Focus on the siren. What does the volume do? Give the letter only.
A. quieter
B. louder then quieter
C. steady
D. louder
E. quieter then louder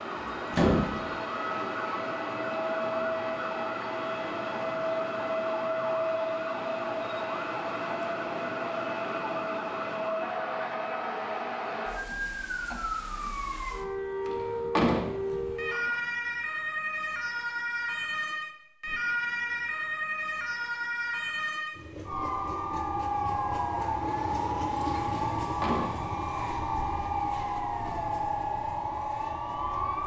C.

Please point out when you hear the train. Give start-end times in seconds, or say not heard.
21.7-30.0.